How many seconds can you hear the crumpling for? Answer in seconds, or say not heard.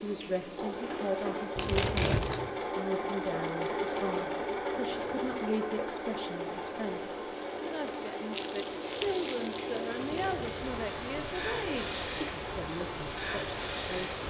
3 s.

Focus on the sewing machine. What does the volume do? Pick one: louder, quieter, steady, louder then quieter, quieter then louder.
quieter.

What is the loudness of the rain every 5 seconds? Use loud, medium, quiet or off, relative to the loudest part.
medium, loud, loud.